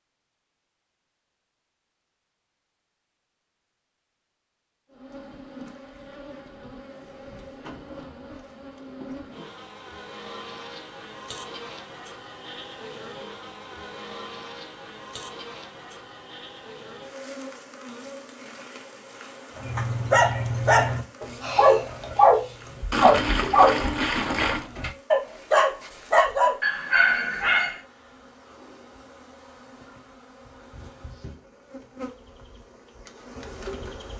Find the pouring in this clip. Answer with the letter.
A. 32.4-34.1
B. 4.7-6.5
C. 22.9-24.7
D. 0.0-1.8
C.